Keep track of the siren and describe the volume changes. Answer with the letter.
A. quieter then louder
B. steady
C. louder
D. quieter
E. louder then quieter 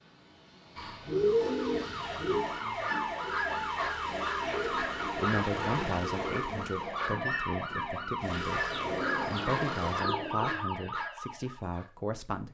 B.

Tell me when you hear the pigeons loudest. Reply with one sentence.
The loudest moment of the pigeons is at 1 second.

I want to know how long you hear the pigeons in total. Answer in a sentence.
You can hear the pigeons for 6 seconds altogether.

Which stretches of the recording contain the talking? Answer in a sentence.
You can hear the talking from 5.2 to 12.4 s.